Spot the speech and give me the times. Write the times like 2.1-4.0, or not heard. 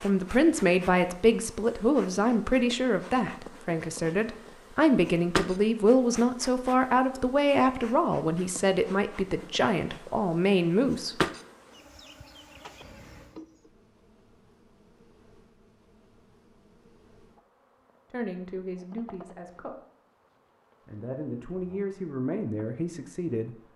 0.0-11.2, 18.1-19.8, 20.9-23.6.